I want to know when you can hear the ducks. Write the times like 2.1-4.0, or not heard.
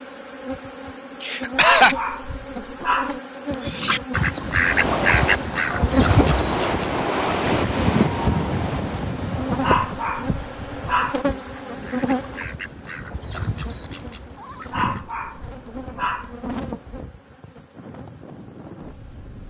3.6-15.1.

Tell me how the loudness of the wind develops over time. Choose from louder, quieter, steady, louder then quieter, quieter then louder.
quieter.